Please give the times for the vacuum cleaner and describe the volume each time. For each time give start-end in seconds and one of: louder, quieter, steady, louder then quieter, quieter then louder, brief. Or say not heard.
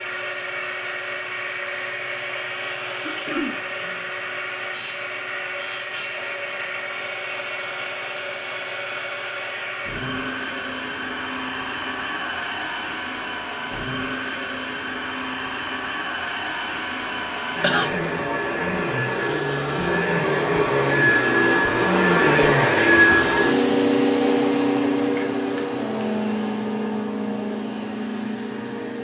0.0-28.9 louder.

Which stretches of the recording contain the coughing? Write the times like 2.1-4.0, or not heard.
3.0-3.5, 17.1-17.9.